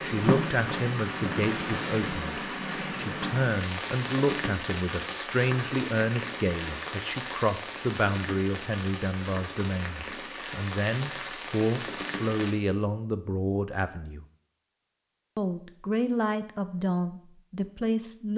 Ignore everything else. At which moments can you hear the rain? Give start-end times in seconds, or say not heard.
0.0-12.6.